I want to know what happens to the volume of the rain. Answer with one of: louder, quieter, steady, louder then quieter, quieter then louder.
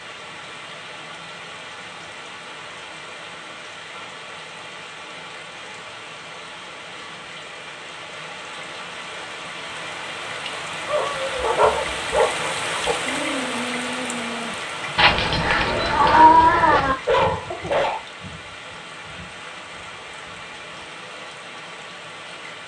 louder then quieter.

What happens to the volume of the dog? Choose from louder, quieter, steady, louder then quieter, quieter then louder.
quieter then louder.